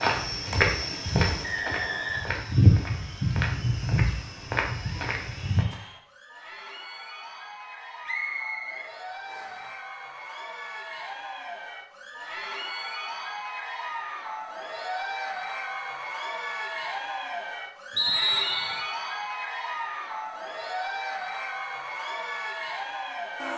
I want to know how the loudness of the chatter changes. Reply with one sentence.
The volume of the chatter goes up.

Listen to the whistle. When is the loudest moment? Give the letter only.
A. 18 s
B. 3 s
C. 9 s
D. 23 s
A.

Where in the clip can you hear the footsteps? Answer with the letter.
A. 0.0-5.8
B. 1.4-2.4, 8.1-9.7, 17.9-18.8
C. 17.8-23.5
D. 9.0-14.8
A.